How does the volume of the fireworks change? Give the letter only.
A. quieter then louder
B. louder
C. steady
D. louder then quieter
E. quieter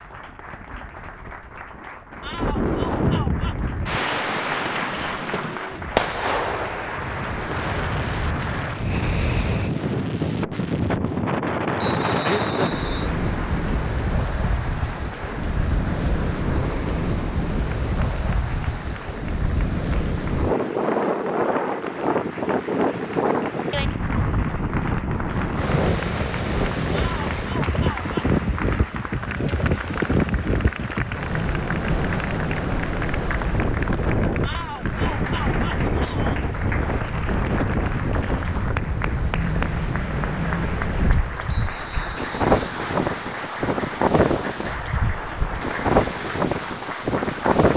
D.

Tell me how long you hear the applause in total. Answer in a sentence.
The applause can be heard for 44 seconds in total.